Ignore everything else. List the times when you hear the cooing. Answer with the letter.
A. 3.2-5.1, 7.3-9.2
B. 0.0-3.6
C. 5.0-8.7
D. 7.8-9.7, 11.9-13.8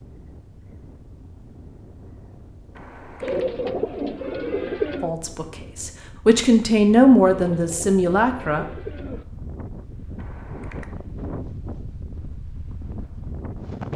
A.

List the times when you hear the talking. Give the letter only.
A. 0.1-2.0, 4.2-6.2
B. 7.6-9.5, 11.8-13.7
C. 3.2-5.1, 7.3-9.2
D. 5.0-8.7
D.